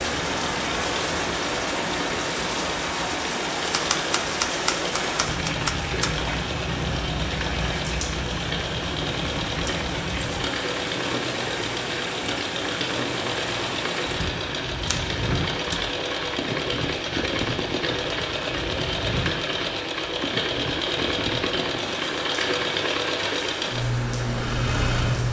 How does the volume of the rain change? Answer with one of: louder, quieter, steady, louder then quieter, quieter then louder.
quieter.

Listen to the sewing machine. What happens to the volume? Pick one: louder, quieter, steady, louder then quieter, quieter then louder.
louder.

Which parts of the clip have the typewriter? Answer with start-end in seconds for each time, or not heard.
3.7-6.1, 14.1-15.9.